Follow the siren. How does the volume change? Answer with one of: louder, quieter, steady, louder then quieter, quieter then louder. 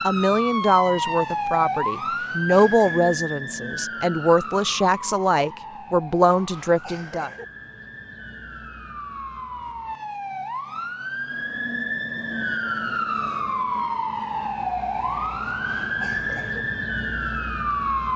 quieter then louder.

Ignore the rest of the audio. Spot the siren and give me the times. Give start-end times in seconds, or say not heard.
0.0-18.1.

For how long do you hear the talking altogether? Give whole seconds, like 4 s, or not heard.
7 s.